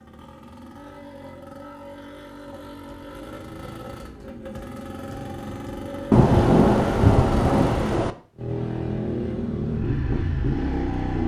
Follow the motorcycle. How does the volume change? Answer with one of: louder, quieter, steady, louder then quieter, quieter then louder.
louder.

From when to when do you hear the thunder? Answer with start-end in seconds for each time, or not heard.
6.1-8.1.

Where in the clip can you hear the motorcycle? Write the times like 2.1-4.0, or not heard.
0.0-11.2.